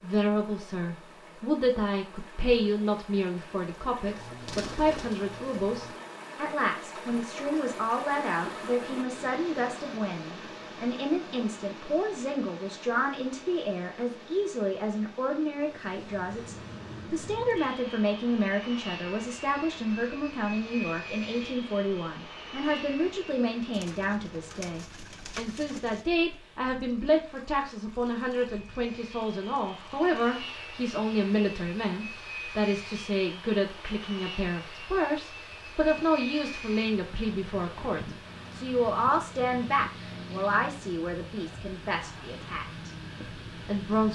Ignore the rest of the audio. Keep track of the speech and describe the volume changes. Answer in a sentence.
The volume of the speech stays about the same.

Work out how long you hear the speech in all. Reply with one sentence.
You can hear the speech for 44 seconds altogether.